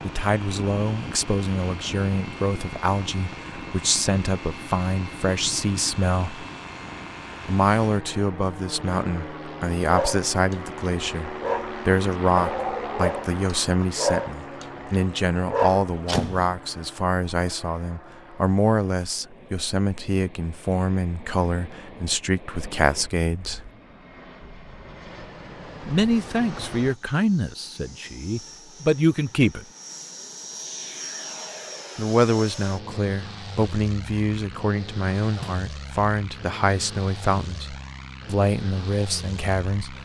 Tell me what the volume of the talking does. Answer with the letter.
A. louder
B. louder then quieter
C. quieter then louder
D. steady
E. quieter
D.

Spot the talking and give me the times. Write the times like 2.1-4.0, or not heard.
0.0-6.5, 7.5-23.7, 25.9-29.6, 31.9-40.0.